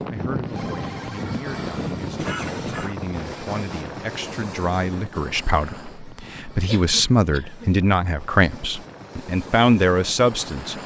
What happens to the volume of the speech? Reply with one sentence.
The loudness of the speech goes up.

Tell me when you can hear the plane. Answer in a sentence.
You can hear the plane from 0.0 to 10.8 s.